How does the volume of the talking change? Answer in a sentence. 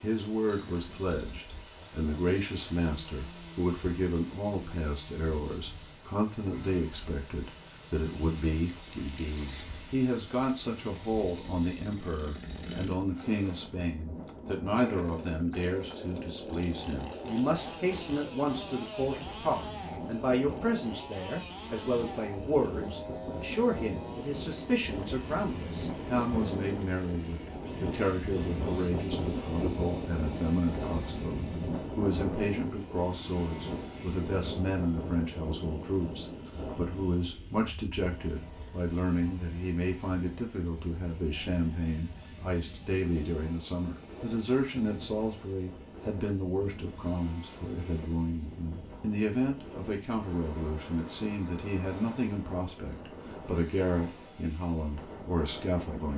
The volume of the talking stays about the same.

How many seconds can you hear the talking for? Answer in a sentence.
The talking can be heard for 56 seconds in total.